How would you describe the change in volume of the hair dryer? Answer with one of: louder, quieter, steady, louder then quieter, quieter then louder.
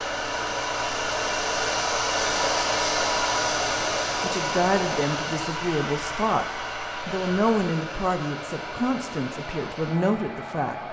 quieter.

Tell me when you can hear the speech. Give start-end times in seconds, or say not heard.
4.2-6.5, 7.0-10.8.